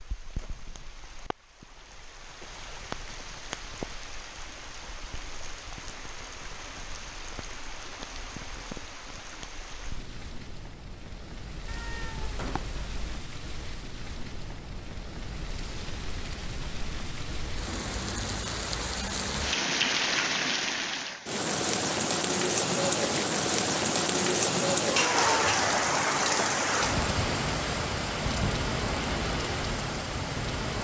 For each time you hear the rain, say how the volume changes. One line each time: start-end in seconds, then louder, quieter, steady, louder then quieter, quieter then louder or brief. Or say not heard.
0.0-30.7 louder.